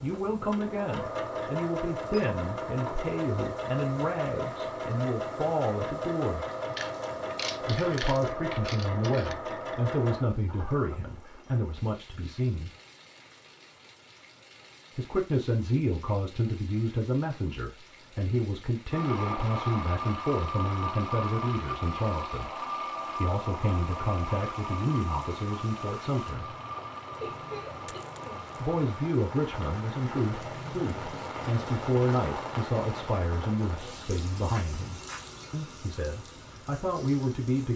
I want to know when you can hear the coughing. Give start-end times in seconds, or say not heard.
10.4-11.6, 27.2-28.4.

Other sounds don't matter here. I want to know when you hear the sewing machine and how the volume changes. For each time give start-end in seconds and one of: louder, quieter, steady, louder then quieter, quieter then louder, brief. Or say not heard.
0.0-10.2 steady
18.9-29.1 quieter.